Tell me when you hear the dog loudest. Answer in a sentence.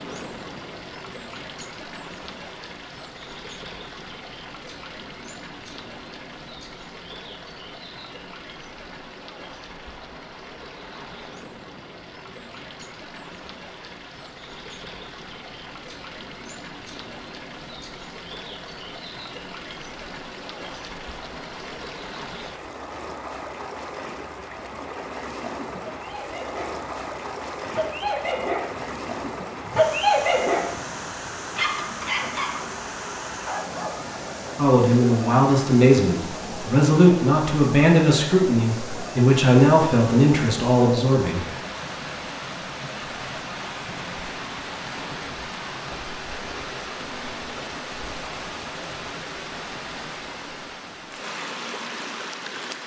The volume of the dog peaks at 30 seconds.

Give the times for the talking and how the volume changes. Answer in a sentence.
The talking can be heard from 34.5 to 41.5 s, at a steady volume.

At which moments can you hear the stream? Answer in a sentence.
The stream can be heard from 0.0 to 52.8 s.